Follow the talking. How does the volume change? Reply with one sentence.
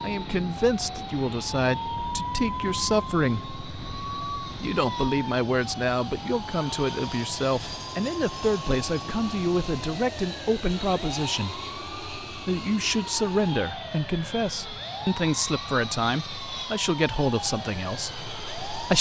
The volume of the talking stays about the same.